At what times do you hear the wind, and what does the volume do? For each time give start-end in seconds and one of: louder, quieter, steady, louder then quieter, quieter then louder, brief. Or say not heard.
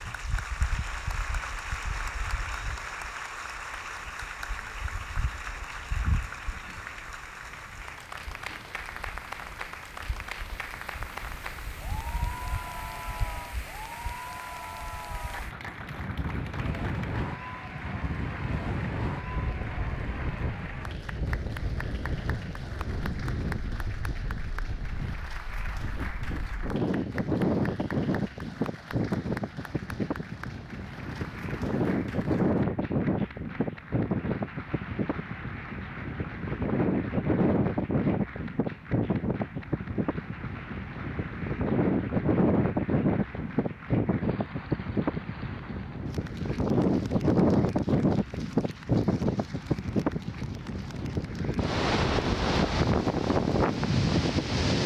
0.0-54.8 louder.